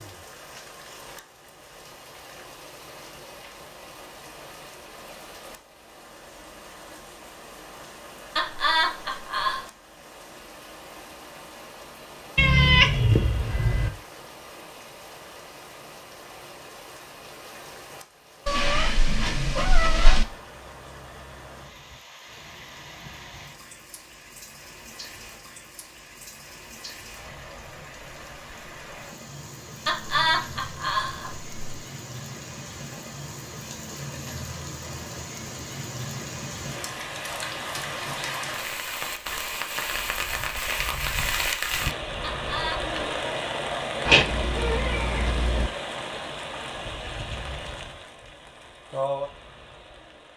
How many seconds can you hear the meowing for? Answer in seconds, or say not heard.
5 s.